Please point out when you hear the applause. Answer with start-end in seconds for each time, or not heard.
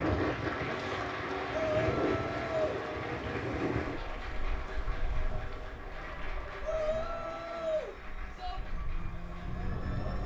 0.0-10.1.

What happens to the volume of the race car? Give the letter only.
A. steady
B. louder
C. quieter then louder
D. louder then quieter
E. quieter
E.